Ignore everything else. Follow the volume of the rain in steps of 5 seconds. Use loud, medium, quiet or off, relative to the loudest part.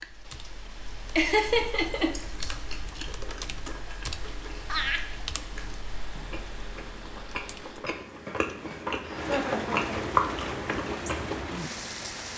quiet, medium, loud.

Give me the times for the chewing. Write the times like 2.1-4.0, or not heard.
1.4-11.4.